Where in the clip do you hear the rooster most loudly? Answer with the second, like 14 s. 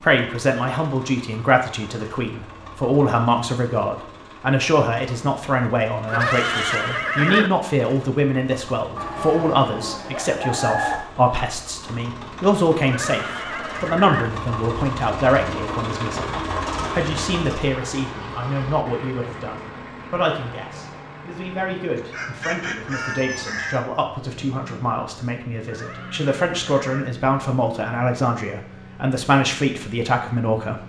11 s.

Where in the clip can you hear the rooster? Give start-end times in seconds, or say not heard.
8.9-11.0, 21.9-23.9.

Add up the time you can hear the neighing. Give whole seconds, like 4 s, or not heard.
4 s.